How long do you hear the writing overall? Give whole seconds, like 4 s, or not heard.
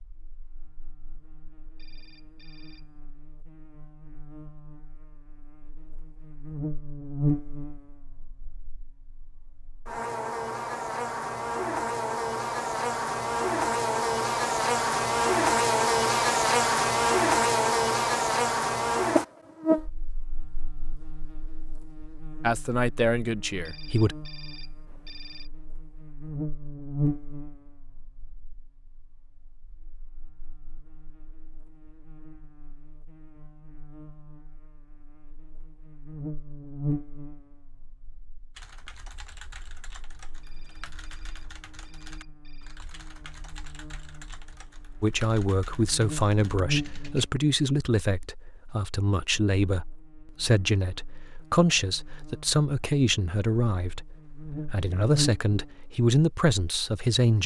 not heard.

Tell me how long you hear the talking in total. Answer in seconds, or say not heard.
14 s.